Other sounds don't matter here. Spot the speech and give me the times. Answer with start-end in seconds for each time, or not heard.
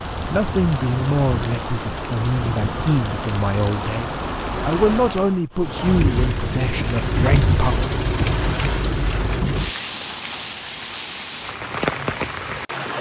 0.2-7.8.